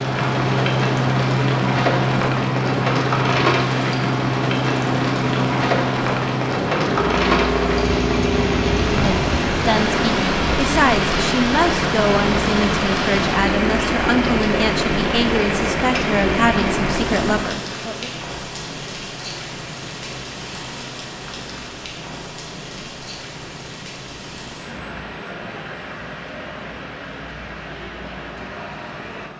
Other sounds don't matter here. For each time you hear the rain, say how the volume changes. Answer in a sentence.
The rain can be heard from 0.0 to 29.3 s, getting quieter.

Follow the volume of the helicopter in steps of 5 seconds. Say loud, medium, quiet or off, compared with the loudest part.
loud, loud, loud, loud, quiet, quiet.